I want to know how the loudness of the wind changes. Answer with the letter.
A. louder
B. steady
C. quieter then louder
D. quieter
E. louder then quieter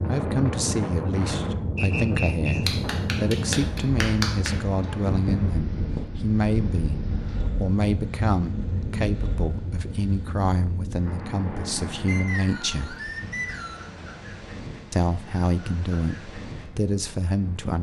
D.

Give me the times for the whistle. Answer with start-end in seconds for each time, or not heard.
1.8-2.6, 12.1-13.9.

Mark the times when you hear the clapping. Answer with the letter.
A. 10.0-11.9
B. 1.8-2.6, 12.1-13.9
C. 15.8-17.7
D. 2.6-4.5
D.